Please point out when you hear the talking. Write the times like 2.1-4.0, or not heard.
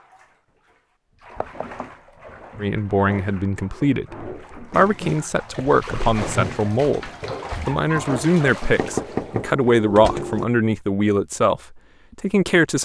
2.6-12.8.